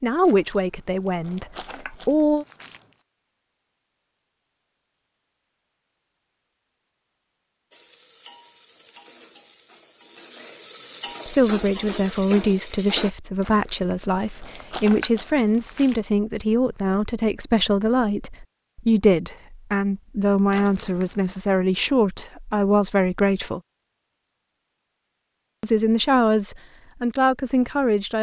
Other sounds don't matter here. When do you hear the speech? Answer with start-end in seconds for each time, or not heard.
0.0-2.5, 11.2-23.6, 25.6-28.1.